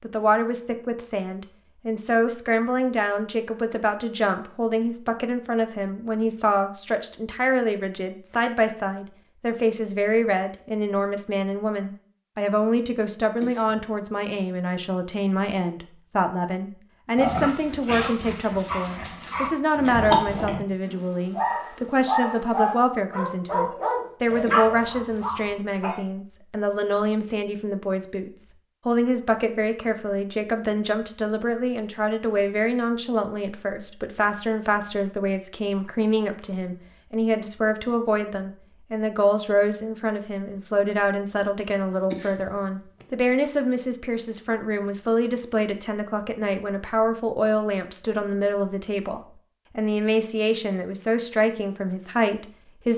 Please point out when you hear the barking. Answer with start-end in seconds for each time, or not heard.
17.1-26.0.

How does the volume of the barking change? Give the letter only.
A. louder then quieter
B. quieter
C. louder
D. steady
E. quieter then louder
C.